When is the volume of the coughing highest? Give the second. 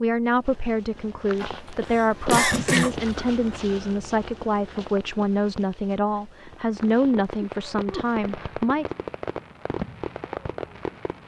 2 s.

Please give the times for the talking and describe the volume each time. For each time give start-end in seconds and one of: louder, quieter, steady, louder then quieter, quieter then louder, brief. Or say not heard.
0.0-8.8 steady.